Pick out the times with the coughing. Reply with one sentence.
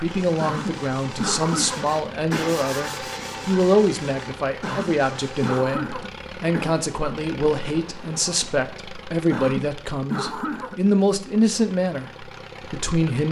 You can hear the coughing from 0.4 to 2.6 s, from 4.6 to 6.8 s and from 9.3 to 10.8 s.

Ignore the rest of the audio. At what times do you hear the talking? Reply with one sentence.
The talking can be heard from 0.0 to 13.2 s.